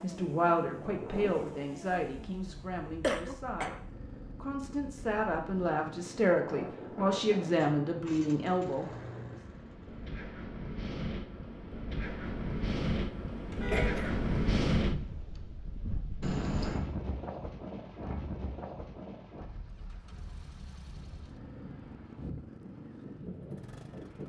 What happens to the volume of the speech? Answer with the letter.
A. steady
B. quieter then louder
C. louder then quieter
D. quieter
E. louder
B.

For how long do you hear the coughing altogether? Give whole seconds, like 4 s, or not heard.
2 s.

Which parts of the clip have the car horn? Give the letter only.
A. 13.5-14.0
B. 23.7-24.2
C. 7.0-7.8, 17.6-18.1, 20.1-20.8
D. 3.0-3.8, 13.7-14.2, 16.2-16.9
A.